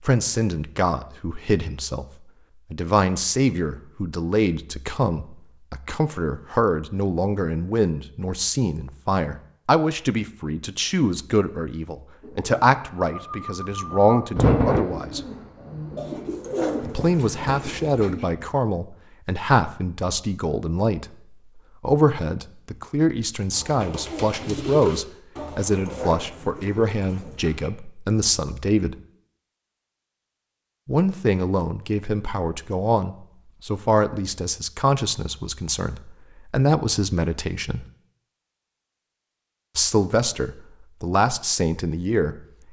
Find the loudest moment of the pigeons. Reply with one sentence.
The volume of the pigeons peaks at 15 seconds.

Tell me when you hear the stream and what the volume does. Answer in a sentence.
You can't hear the stream here.